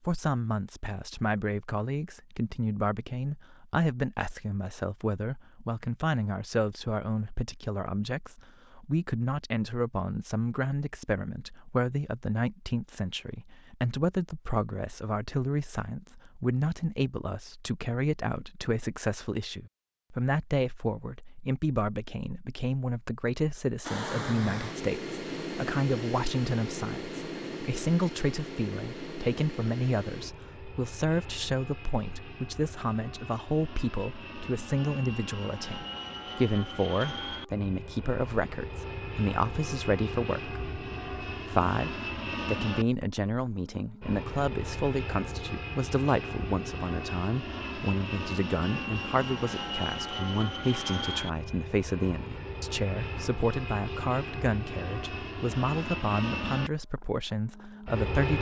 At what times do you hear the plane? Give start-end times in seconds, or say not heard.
23.8-58.3.